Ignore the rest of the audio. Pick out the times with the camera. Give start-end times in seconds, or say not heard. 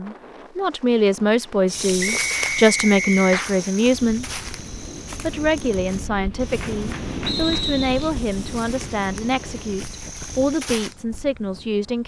not heard.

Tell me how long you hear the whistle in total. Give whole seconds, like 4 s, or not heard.
2 s.